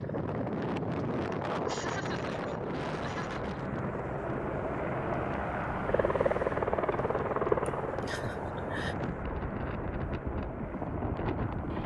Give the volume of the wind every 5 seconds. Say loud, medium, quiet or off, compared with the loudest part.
loud, medium, loud.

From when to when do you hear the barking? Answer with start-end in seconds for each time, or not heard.
not heard.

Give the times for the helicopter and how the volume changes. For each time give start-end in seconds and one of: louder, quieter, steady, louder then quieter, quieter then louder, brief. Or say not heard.
0.0-11.8 louder then quieter.